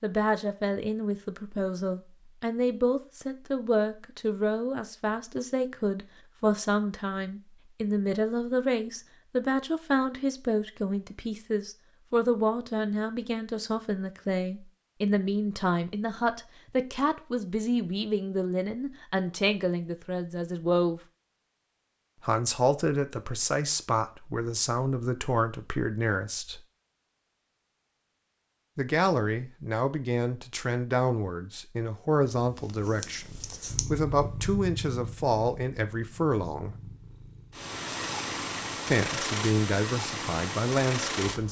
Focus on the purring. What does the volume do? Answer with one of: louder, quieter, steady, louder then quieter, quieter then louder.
quieter then louder.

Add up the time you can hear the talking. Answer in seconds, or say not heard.
36 s.